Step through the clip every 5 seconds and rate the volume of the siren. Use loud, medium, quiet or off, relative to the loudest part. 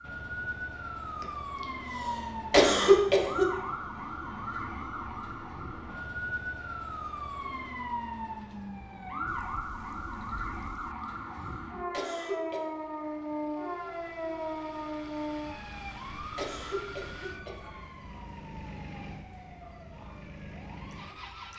loud, loud, loud, medium, quiet.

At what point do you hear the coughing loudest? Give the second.
3 s.